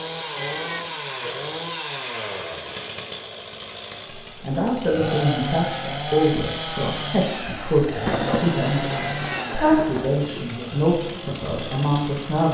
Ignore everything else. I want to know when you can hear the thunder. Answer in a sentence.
You can hear the thunder from 8.1 to 10.5 s.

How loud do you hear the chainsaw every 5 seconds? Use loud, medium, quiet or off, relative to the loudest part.
loud, loud, medium.